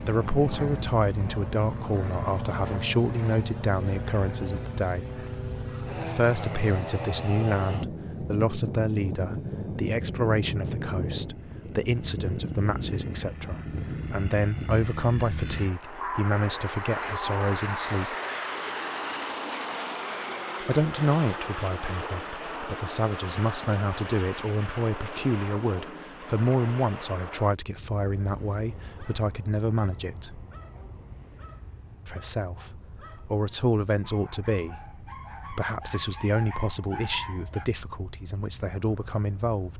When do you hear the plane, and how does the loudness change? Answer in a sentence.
The plane can be heard from 0.0 to 39.7 s, getting quieter.